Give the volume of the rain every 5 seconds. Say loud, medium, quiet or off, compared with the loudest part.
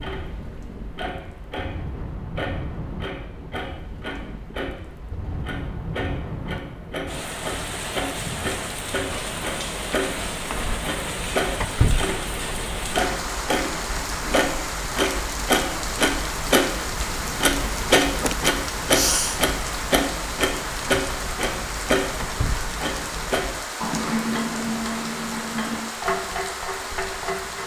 medium, loud, loud, loud, loud, loud.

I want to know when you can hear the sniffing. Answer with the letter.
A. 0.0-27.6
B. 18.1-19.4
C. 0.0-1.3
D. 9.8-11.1
B.